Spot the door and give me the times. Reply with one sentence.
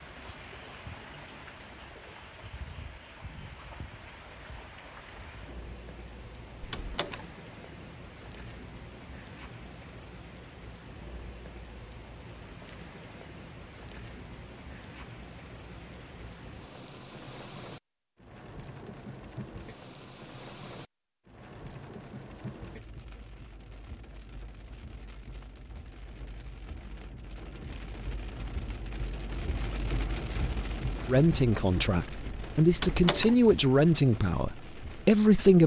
You can hear the door from 6.6 to 7.2 s and from 32.7 to 33.4 s.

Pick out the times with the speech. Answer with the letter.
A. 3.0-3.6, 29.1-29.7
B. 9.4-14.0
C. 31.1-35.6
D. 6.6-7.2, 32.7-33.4
C.